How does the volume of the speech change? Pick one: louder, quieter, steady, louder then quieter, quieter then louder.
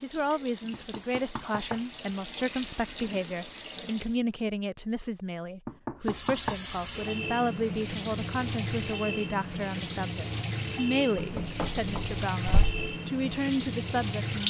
steady.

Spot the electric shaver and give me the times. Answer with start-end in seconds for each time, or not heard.
not heard.